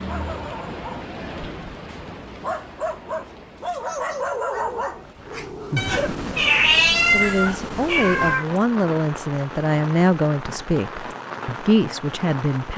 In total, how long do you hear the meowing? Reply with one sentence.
The meowing can be heard for 3 seconds in total.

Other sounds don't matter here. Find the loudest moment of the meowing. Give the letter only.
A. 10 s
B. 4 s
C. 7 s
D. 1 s
C.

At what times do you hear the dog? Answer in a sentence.
You can hear the dog from 0.0 to 6.3 s.